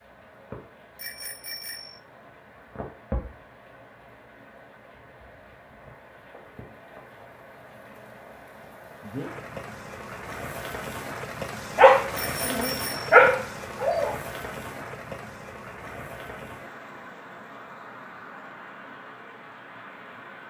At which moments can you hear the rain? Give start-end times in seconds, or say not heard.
0.0-20.4.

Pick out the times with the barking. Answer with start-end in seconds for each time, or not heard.
11.8-14.1.